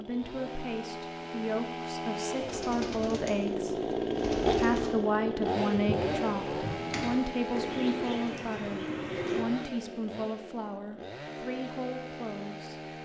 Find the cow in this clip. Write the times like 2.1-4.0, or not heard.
not heard.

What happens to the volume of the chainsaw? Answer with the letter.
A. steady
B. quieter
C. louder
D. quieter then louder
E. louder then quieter
E.